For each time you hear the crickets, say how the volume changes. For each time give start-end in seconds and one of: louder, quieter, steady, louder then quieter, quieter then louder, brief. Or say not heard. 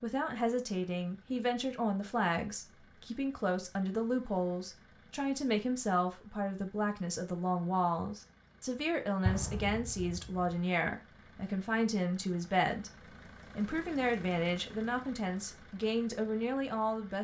not heard.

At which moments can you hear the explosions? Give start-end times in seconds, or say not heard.
9.2-10.4.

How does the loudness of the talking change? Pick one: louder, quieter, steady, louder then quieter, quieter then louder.
steady.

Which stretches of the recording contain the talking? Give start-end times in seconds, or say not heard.
0.0-17.1.